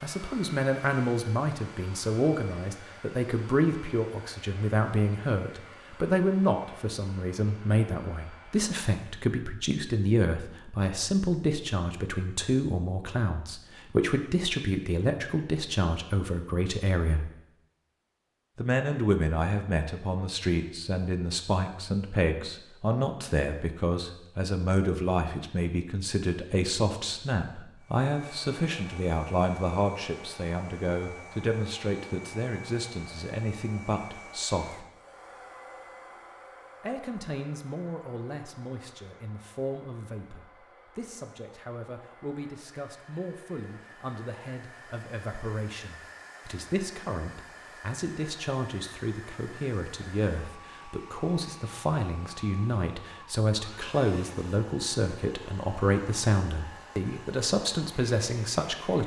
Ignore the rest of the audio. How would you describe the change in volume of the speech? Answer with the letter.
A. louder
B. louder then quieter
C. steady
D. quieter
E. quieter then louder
E.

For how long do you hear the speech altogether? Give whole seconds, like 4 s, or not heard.
56 s.